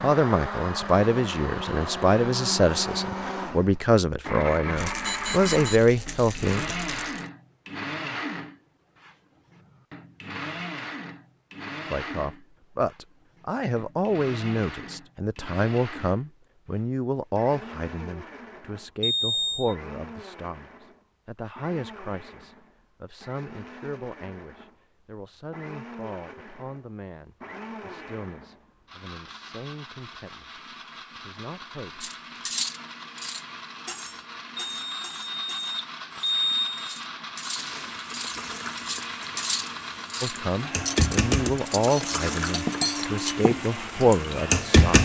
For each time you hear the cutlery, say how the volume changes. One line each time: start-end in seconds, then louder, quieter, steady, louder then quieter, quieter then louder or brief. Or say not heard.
32.0-43.6 quieter then louder.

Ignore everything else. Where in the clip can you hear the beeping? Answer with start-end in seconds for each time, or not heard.
5.0-6.0, 19.0-19.8, 34.6-37.0.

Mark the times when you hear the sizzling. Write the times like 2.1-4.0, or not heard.
37.5-44.9.